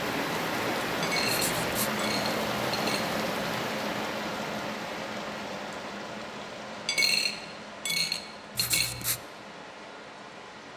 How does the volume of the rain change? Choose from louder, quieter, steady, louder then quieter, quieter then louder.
quieter.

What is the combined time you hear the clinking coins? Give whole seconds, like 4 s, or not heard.
4 s.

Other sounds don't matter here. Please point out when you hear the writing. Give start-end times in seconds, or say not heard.
1.2-1.9, 8.6-9.2.